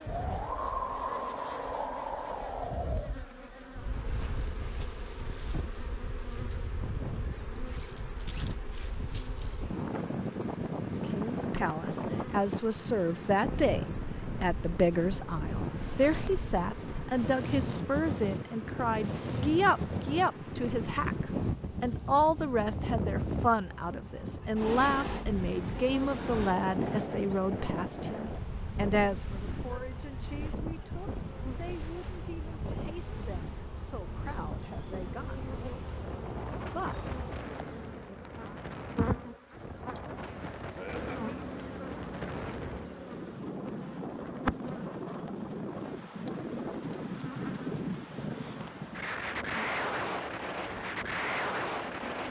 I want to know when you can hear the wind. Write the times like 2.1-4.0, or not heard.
0.0-52.2.